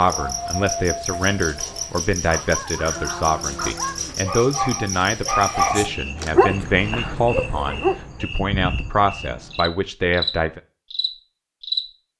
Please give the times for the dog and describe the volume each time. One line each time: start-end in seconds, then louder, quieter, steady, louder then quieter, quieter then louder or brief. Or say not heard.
0.1-8.2 louder.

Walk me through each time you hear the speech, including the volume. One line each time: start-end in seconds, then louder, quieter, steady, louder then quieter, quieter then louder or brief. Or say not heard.
0.0-10.6 steady.